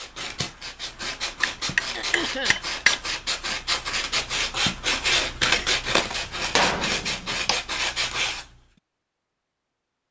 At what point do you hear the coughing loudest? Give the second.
2 s.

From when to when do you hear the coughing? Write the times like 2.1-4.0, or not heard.
1.9-2.6, 5.5-6.2.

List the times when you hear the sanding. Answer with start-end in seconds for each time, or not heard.
0.0-8.6.